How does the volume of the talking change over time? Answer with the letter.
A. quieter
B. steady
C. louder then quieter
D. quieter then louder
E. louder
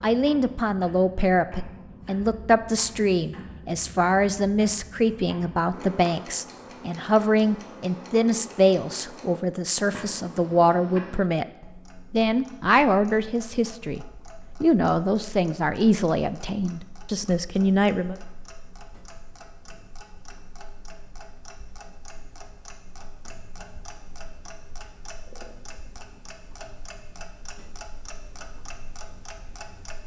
B.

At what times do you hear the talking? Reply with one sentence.
You can hear the talking from 0.0 to 11.4 s and from 12.1 to 18.1 s.